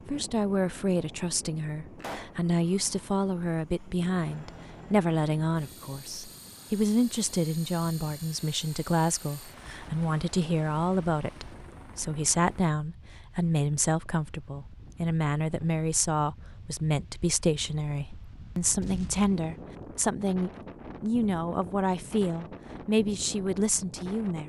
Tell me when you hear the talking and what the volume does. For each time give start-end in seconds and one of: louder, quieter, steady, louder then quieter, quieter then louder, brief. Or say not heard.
0.1-24.4 steady.